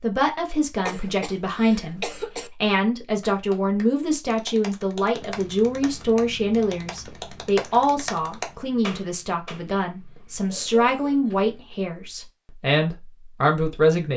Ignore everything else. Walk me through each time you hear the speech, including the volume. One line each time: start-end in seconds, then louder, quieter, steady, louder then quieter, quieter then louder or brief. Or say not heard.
0.0-14.1 steady.